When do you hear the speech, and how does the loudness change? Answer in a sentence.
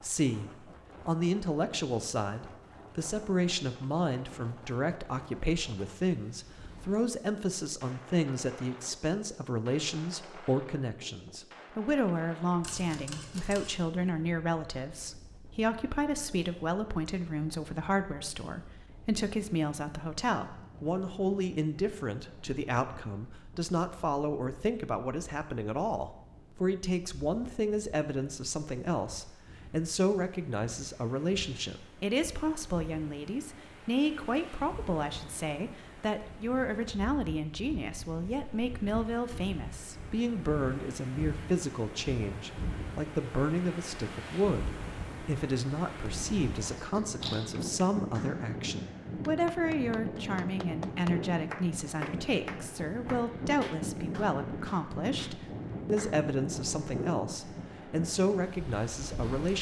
You can hear the speech from 0.0 to 59.5 s, at a steady volume.